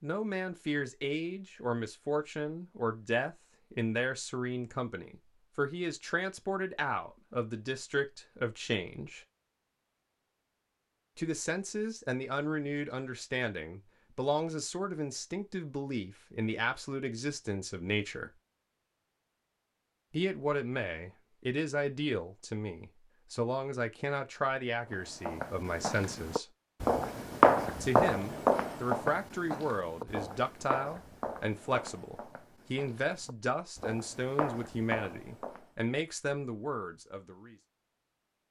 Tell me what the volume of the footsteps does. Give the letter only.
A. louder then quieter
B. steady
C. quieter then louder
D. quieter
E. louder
C.